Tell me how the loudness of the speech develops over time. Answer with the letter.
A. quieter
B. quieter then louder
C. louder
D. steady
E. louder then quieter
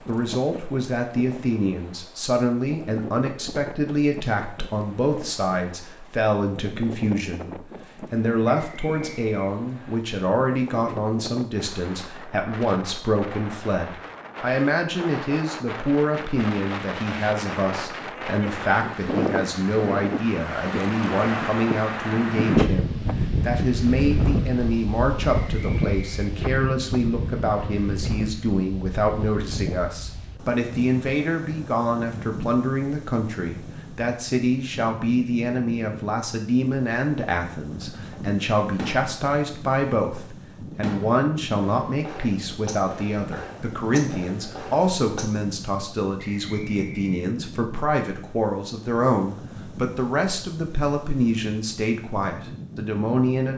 D.